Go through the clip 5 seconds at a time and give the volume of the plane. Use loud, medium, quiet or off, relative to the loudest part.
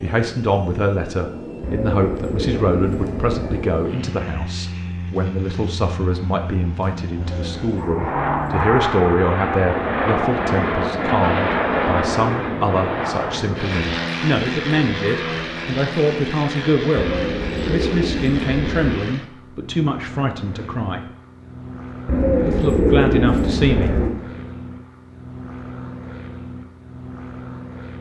medium, loud, loud, medium, quiet, quiet.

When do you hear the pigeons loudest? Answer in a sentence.
The loudest moment of the pigeons is at 23 seconds.